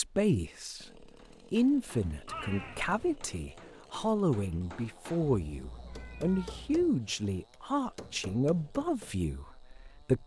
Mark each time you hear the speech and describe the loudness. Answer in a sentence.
The speech can be heard from 0.0 to 10.2 s, at a steady volume.